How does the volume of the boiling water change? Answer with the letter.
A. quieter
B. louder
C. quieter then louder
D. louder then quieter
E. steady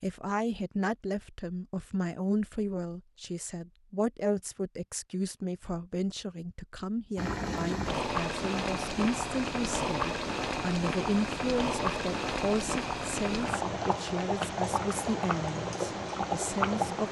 E.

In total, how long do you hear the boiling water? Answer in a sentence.
The boiling water can be heard for 10 seconds in total.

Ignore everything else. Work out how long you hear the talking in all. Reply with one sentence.
The talking can be heard for 17 seconds in total.